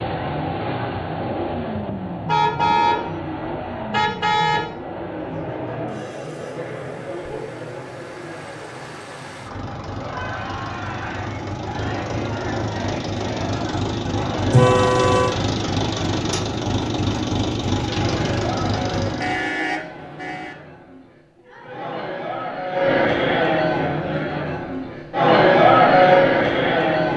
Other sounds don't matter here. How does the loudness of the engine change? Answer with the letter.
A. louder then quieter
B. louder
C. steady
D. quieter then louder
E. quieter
D.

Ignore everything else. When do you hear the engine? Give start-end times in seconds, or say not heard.
0.0-19.5.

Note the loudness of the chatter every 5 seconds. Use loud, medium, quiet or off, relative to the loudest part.
off, quiet, quiet, quiet, medium, loud.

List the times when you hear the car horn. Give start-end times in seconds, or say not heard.
2.2-3.0, 3.9-4.7, 14.5-15.3, 19.2-20.6.